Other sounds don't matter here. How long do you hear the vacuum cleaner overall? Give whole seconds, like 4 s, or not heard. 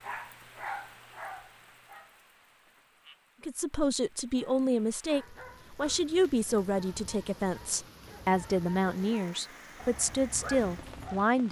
not heard.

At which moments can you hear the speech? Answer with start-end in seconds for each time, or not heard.
3.4-11.4.